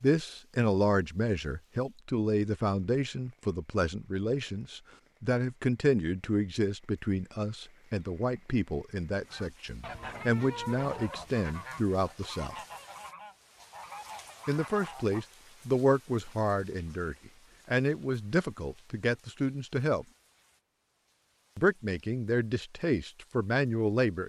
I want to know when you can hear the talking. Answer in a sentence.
You can hear the talking from 0.0 to 12.6 s, from 14.4 to 20.1 s and from 21.6 to 24.2 s.